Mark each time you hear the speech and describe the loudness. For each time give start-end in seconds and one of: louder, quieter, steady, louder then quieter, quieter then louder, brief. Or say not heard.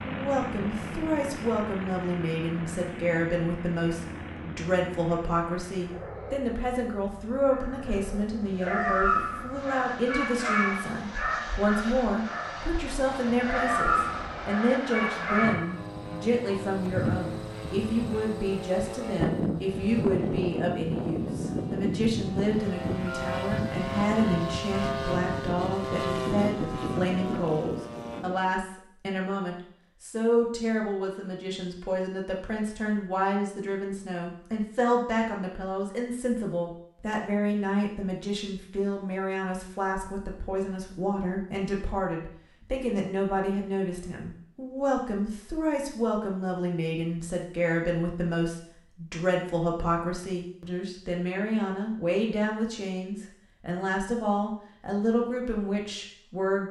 0.0-56.6 steady.